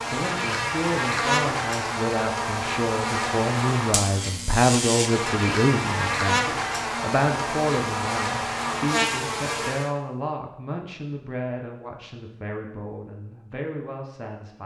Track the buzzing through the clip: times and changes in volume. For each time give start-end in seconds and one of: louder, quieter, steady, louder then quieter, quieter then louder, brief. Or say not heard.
0.0-9.9 steady.